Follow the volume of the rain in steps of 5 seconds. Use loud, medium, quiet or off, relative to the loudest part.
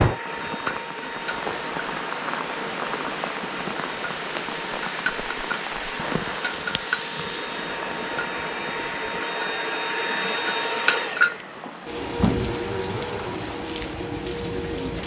loud, loud, medium.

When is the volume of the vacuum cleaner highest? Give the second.
11 s.